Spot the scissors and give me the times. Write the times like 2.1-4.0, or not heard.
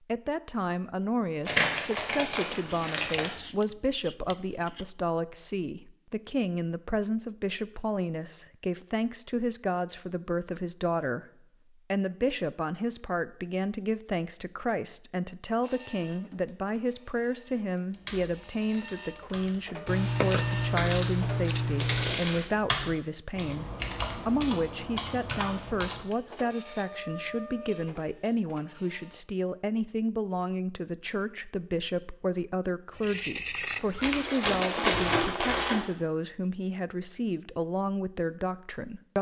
2.9-4.8, 19.9-22.2, 33.0-34.2.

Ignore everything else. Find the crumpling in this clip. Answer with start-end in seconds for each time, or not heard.
1.4-3.4, 21.8-22.4, 34.0-35.8.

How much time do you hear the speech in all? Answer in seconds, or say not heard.
39 s.